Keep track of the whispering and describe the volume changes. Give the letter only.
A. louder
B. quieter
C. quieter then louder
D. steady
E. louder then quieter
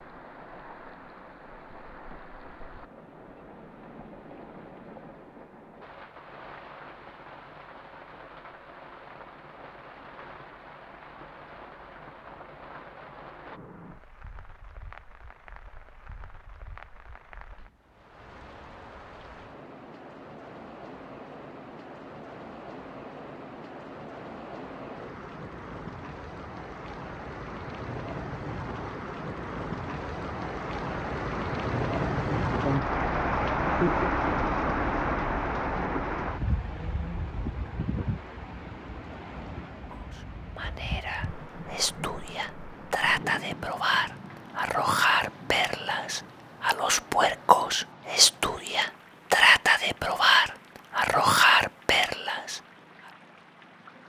A.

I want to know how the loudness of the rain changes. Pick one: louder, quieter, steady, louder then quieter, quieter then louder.
louder then quieter.